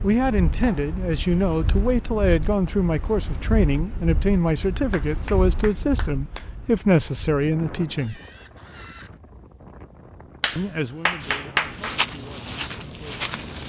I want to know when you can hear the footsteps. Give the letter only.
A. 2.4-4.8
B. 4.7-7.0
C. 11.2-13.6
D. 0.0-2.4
C.